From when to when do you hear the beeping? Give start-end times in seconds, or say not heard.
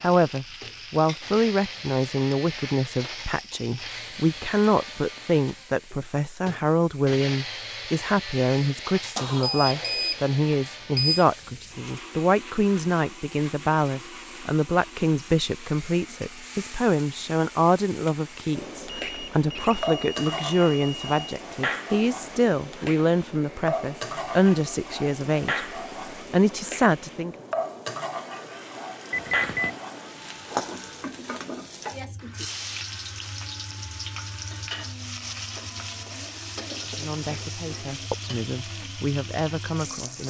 9.2-11.2, 18.9-21.1, 29.1-29.8.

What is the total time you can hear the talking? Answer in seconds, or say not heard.
30 s.